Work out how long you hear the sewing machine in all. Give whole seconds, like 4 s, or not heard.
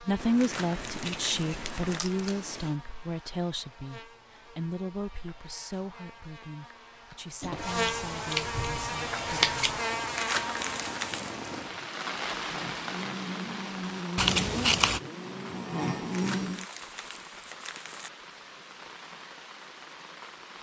not heard.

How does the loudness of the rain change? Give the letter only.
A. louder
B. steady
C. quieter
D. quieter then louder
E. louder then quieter
E.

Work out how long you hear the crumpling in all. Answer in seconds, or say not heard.
5 s.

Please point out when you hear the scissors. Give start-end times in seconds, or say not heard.
0.2-2.7, 7.4-9.8, 14.2-15.0.